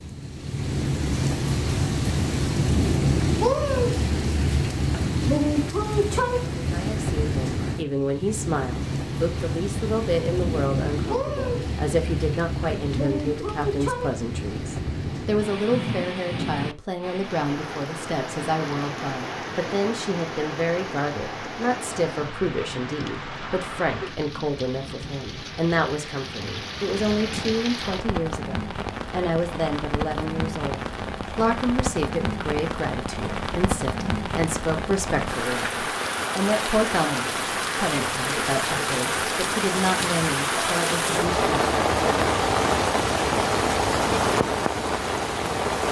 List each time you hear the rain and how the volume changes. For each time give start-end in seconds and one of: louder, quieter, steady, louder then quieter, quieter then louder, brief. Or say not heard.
0.0-45.8 quieter then louder.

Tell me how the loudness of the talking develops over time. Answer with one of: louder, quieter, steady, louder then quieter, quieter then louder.
steady.